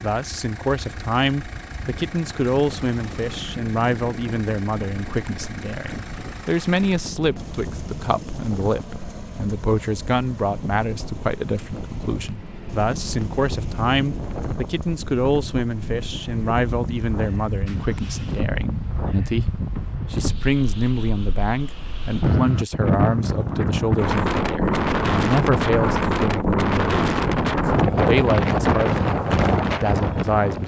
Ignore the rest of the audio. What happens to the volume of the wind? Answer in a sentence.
The volume of the wind goes up.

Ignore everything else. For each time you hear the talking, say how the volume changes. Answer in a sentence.
You can hear the talking from 0.0 to 30.6 s, at a steady volume.